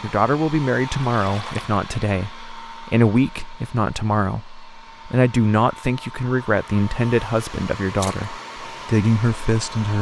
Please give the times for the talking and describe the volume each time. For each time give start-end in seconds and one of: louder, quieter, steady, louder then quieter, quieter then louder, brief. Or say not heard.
0.0-9.9 steady.